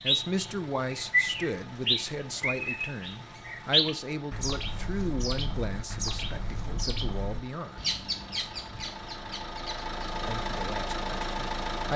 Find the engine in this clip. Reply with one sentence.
The engine can be heard from 0.0 to 11.9 s.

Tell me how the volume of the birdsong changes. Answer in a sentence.
The loudness of the birdsong goes down.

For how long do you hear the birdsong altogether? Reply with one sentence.
The birdsong can be heard for 10 seconds in total.